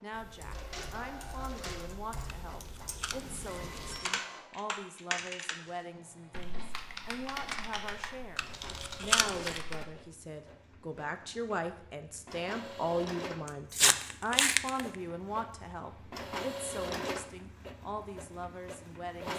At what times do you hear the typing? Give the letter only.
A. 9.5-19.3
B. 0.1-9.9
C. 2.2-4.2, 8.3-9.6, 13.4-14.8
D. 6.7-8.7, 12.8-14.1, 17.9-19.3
B.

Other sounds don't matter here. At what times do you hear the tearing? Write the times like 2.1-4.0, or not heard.
2.2-4.2, 8.3-9.6, 13.4-14.8.